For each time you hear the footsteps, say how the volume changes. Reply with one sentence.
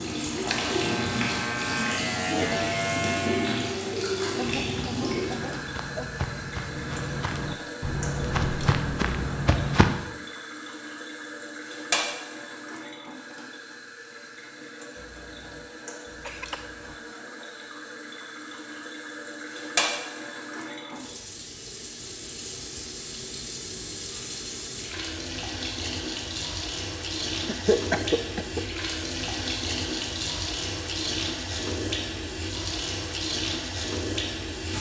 The footsteps can be heard from 4.3 to 9.9 s, getting louder.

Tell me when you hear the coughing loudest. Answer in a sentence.
The volume of the coughing peaks at 28 seconds.